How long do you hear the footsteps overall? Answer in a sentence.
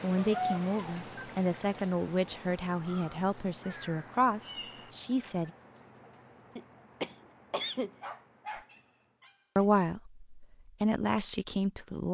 The footsteps can't be heard in this clip.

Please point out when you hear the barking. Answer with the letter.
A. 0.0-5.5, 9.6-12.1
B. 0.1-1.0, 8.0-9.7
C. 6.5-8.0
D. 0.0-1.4
B.